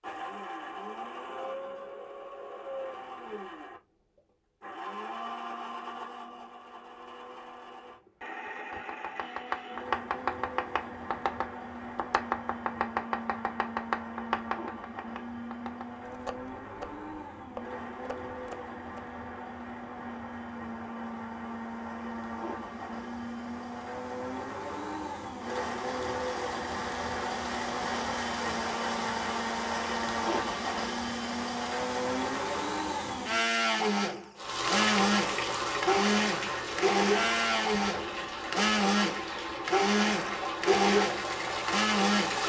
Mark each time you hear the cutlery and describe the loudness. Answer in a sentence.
The cutlery can't be heard in this clip.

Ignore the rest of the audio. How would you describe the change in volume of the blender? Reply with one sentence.
The volume of the blender goes up.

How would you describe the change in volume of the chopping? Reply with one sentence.
The volume of the chopping goes down.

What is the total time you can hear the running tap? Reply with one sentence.
The running tap can be heard for 8 seconds in total.